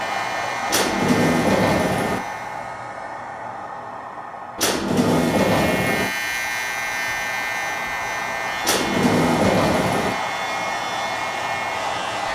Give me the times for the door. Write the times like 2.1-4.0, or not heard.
0.7-2.2, 4.5-6.1, 8.6-10.2.